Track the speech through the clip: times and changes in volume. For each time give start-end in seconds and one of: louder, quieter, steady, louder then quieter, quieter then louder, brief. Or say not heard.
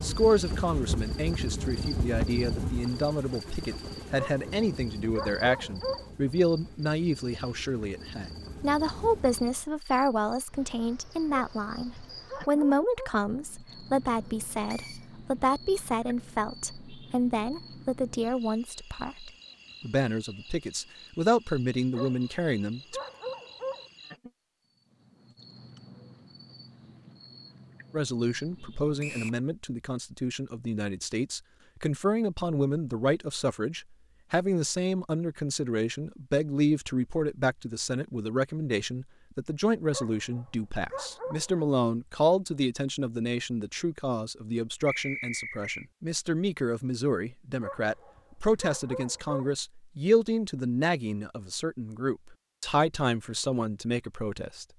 0.0-23.0 steady
27.9-54.6 steady.